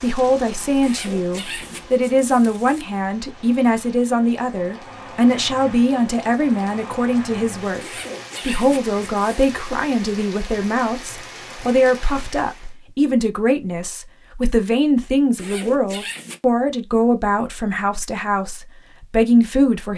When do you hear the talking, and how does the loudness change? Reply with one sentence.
The talking can be heard from 0.0 to 19.9 s, at a steady volume.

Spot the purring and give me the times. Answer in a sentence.
The purring can't be heard in this clip.